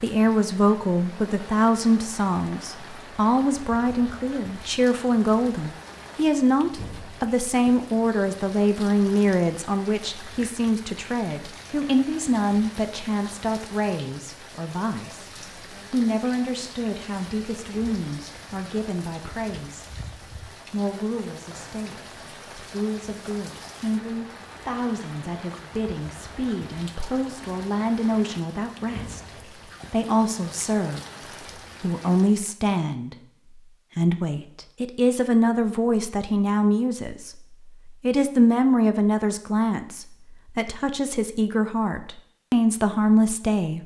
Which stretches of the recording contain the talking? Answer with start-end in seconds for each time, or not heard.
0.0-15.3, 15.9-19.9, 20.7-29.2, 29.9-31.0, 31.8-33.1, 34.0-43.8.